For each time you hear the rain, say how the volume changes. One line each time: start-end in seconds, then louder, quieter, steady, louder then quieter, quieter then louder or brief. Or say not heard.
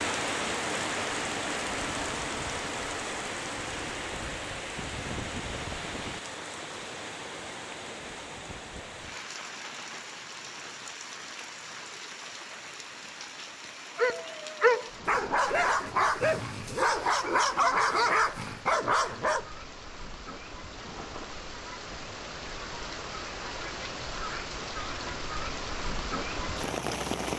0.0-27.3 quieter then louder.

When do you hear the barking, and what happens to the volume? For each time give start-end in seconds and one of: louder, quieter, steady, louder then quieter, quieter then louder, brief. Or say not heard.
13.9-19.4 steady.